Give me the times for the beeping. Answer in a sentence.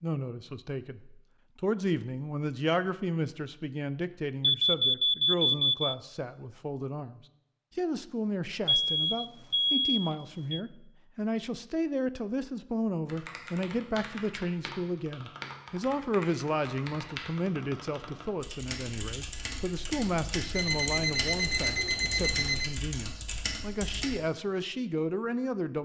You can hear the beeping from 4.4 to 6.0 s, from 8.7 to 10.6 s and from 20.6 to 22.8 s.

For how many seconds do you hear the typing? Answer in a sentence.
You can hear the typing for 11 seconds altogether.